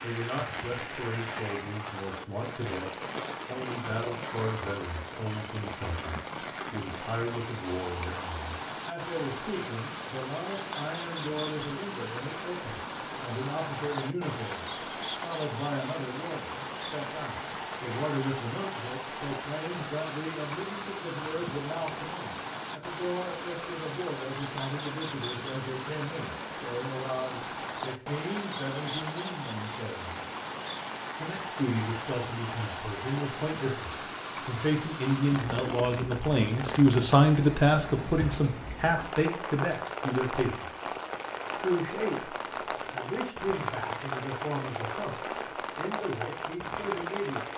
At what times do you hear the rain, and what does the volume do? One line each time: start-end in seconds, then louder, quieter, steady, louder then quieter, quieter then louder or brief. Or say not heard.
0.0-47.5 steady.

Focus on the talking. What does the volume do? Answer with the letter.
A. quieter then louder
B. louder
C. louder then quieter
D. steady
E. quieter
B.